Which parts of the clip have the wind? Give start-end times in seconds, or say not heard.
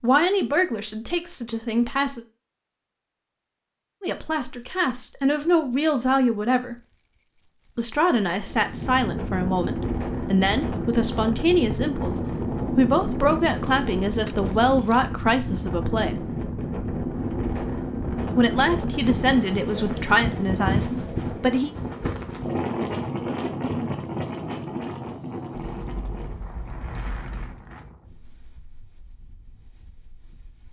8.4-30.6.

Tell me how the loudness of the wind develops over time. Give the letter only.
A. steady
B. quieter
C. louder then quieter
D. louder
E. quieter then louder
B.